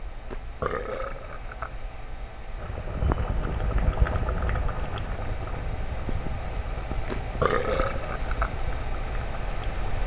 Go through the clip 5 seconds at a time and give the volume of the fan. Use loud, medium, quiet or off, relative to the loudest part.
medium, loud.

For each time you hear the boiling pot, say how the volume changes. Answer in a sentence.
The boiling pot can be heard from 2.5 to 10.0 s, getting quieter.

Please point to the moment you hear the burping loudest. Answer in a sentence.
The volume of the burping peaks at 8 seconds.